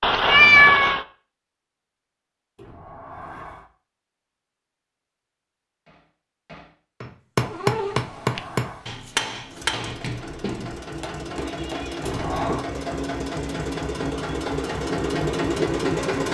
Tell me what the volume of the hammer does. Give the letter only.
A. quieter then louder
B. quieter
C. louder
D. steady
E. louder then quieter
E.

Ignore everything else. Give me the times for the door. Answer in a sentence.
The door can be heard from 2.5 to 3.6 s, from 7.8 to 8.8 s and from 12.1 to 12.7 s.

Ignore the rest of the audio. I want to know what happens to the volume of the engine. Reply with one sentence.
The loudness of the engine goes up.